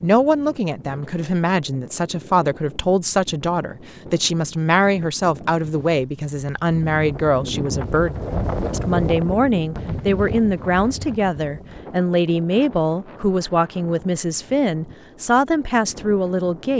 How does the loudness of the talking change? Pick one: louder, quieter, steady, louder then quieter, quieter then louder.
steady.